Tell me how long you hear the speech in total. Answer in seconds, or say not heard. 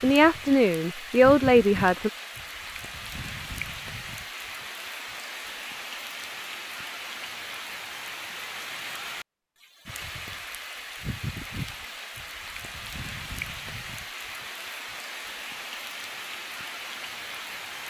2 s.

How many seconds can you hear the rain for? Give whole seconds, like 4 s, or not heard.
18 s.